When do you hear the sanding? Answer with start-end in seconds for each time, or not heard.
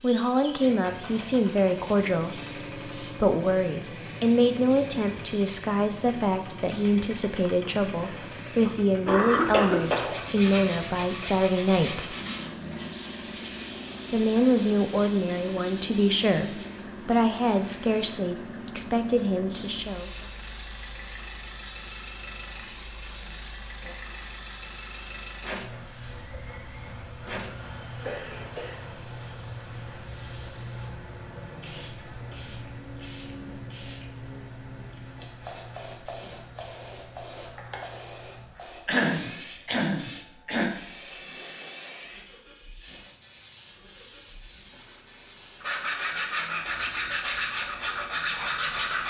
9.9-16.6, 45.6-49.0.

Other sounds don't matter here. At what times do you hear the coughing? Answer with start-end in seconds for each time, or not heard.
7.5-10.2, 27.9-28.9, 38.9-40.7.